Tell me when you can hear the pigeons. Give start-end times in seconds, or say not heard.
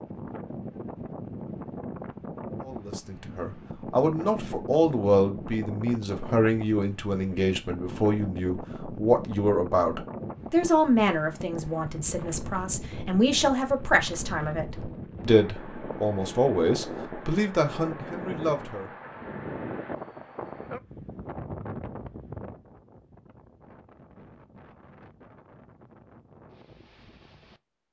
not heard.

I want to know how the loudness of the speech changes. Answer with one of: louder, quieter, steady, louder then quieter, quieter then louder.
steady.